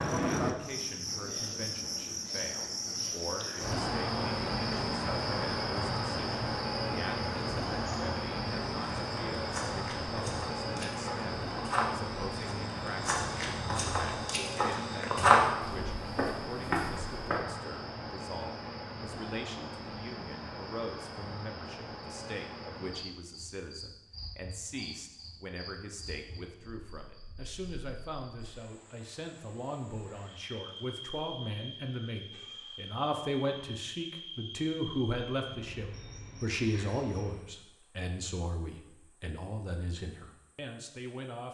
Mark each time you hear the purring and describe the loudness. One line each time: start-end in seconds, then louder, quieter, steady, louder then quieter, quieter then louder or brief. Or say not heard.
not heard.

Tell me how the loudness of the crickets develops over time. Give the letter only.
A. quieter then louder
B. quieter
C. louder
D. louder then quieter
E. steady
B.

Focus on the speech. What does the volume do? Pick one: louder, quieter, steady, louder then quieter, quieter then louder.
louder.